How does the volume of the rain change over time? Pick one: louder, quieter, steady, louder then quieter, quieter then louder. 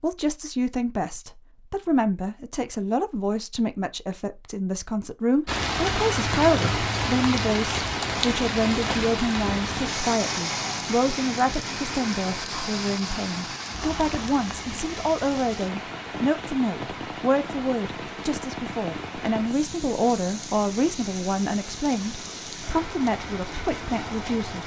quieter.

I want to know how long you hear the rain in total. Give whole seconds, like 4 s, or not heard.
19 s.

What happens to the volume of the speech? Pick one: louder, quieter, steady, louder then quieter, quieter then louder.
steady.